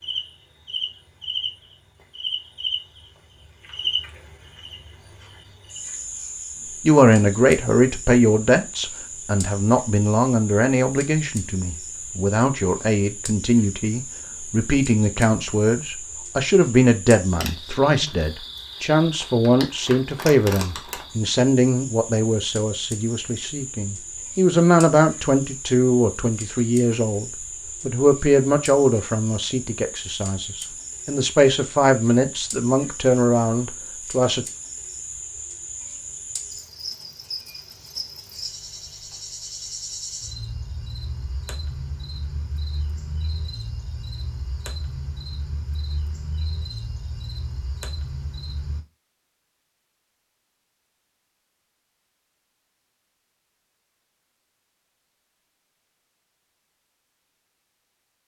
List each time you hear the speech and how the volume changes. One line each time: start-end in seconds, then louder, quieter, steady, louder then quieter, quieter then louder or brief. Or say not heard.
6.8-34.5 steady.